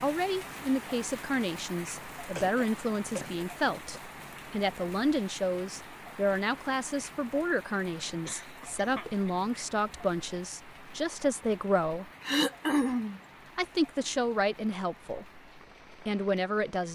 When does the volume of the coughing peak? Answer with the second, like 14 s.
13 s.